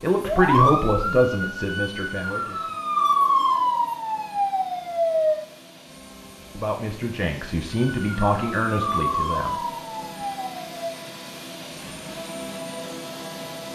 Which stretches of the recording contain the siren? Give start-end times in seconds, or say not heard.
0.1-5.5, 7.7-11.0.